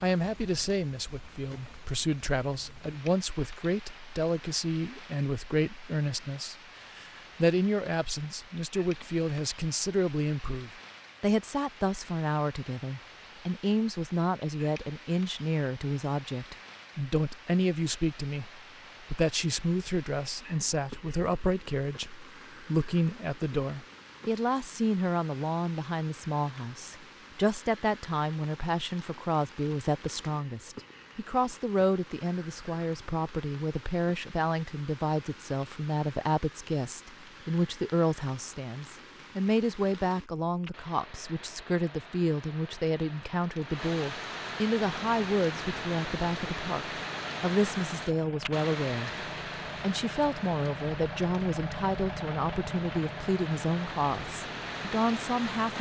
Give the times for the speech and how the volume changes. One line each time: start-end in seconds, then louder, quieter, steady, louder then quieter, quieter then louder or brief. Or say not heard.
0.0-49.1 steady
49.8-55.7 steady.